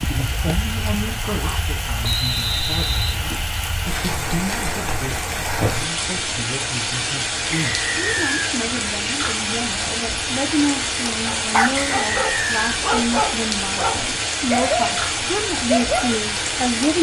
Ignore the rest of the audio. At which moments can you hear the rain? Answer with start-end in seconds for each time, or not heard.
0.0-16.9.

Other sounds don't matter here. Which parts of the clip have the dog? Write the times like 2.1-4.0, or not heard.
0.0-1.6, 11.2-16.1.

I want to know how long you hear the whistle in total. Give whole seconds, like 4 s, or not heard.
3 s.